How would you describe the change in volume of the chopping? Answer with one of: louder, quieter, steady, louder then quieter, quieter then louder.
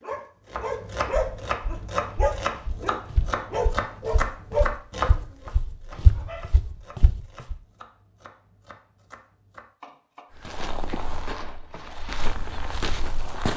quieter.